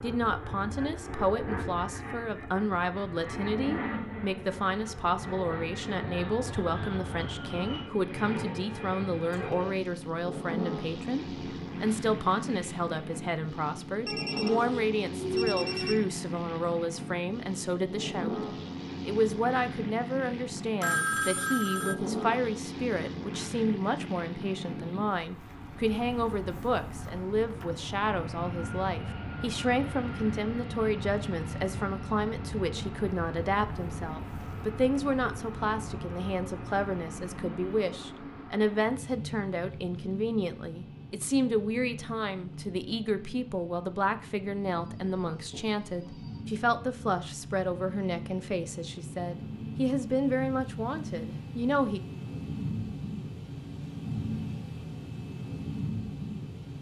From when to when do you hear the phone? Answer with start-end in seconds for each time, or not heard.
14.1-16.0, 20.8-21.9, 44.9-46.4.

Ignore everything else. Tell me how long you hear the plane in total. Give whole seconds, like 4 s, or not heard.
57 s.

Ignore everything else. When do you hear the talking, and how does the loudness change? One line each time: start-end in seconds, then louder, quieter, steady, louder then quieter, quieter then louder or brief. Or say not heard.
0.0-18.4 steady
19.1-52.0 steady.